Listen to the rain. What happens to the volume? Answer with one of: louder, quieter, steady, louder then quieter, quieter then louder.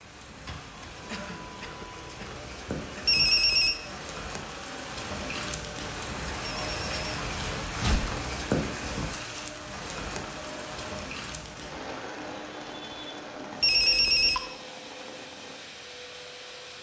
louder then quieter.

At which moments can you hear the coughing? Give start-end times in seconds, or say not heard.
1.1-3.0.